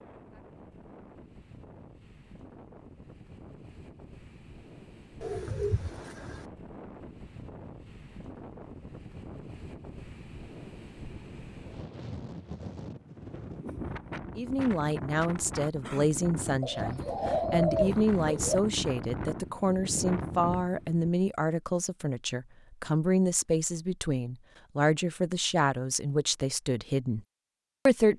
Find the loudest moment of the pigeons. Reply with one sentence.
The volume of the pigeons peaks at 18 seconds.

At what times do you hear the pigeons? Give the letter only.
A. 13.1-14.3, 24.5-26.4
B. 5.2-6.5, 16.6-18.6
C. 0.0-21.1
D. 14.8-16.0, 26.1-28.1
B.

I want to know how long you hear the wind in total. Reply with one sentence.
You can hear the wind for 21 seconds altogether.